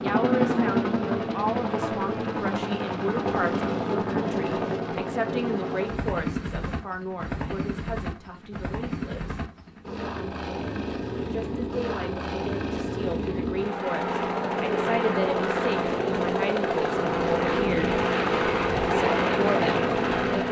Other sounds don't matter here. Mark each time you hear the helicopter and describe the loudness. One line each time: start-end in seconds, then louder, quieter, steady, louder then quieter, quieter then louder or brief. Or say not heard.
0.0-20.4 quieter then louder.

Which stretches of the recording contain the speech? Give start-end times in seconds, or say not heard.
0.0-9.4, 11.3-17.9, 18.9-20.4.